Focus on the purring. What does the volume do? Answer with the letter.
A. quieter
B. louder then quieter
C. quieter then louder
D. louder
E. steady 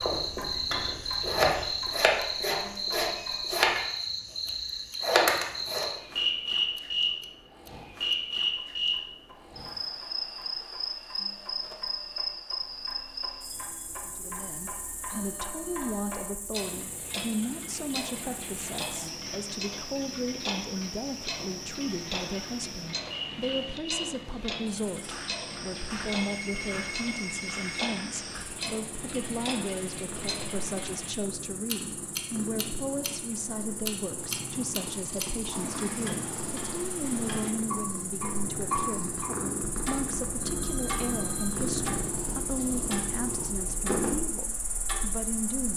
D.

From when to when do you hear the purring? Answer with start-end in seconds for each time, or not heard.
28.4-44.2.